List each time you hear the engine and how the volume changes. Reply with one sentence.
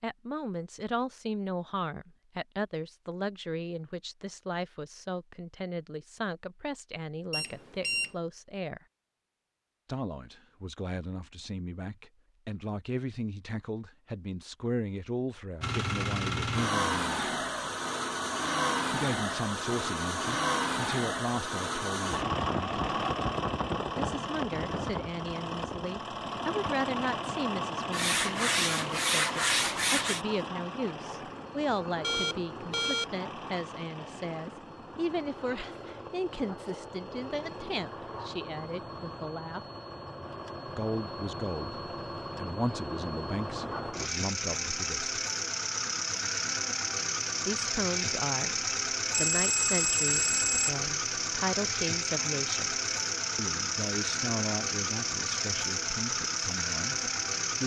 You can hear the engine from 15.6 to 57.6 s, getting quieter then louder.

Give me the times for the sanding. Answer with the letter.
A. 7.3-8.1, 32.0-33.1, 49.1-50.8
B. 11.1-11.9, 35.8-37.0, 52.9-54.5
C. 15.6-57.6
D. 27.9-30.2
D.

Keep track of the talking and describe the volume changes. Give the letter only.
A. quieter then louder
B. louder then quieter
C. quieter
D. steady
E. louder
D.